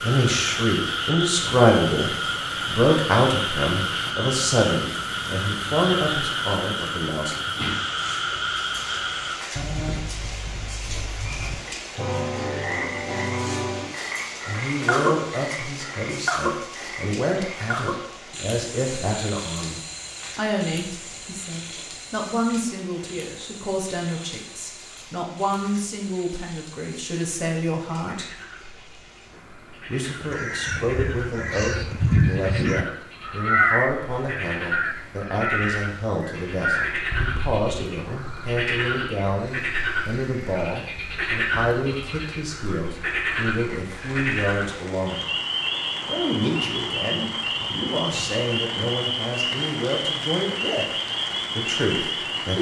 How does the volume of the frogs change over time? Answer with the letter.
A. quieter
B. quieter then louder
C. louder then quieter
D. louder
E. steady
B.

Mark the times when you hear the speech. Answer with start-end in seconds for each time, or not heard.
0.0-7.3, 14.4-28.4, 29.9-45.3, 46.0-50.9, 51.5-52.5.